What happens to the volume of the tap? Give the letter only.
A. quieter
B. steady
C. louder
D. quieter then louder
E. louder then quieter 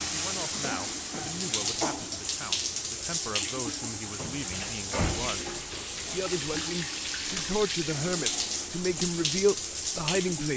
B.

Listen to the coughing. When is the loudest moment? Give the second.
2 s.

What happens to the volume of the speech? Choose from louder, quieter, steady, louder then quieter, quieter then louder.
louder.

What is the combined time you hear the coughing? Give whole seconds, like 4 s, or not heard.
2 s.